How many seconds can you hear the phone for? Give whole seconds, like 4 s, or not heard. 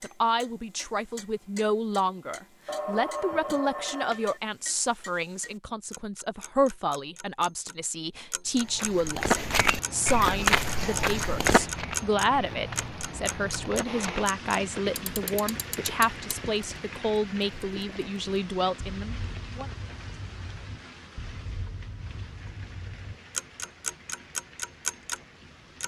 2 s.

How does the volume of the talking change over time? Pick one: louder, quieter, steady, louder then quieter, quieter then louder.
steady.